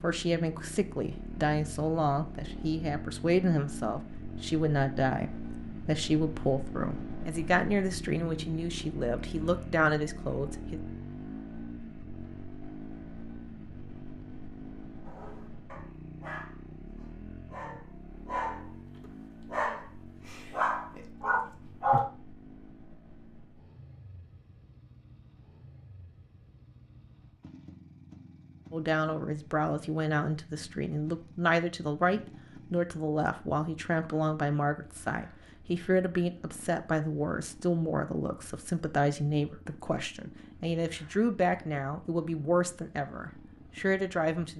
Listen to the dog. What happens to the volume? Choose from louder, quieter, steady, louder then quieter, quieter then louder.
louder.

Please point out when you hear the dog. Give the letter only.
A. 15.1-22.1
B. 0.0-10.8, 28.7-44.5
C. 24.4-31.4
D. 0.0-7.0
A.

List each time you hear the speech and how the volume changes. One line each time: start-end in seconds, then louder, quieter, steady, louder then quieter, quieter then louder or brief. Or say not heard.
0.0-10.8 steady
28.7-44.5 steady.